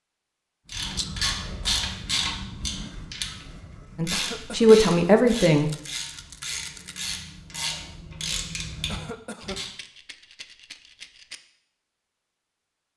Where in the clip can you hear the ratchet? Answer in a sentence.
You can hear the ratchet from 0.7 to 9.7 s.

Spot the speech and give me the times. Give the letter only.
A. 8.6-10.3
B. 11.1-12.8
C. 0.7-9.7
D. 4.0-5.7
D.